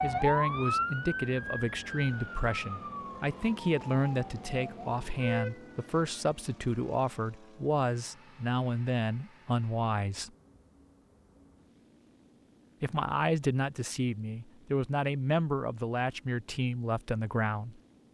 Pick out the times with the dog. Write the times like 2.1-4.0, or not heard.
not heard.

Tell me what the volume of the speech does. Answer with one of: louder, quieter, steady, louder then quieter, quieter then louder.
steady.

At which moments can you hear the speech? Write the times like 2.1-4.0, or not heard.
0.0-10.3, 12.8-17.8.